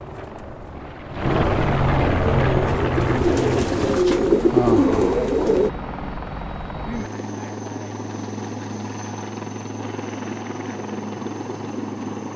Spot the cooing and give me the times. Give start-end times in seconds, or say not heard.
2.1-5.7.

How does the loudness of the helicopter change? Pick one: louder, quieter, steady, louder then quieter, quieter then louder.
quieter.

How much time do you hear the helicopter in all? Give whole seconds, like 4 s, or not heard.
12 s.